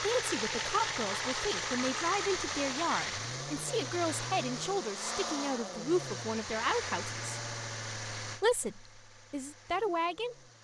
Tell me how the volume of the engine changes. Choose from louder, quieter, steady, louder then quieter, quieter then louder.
quieter.